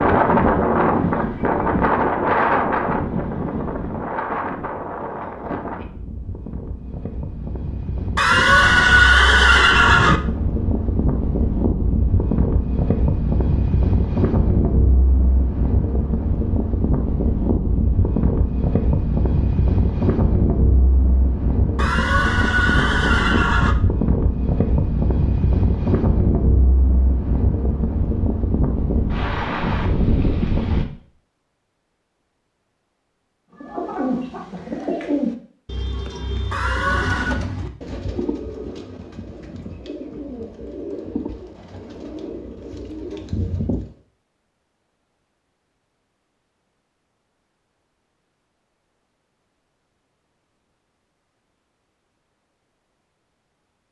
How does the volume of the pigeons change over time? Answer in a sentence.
The volume of the pigeons goes down.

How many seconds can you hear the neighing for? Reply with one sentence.
You can hear the neighing for 5 seconds altogether.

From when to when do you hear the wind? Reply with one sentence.
You can hear the wind from 0.0 to 30.9 s.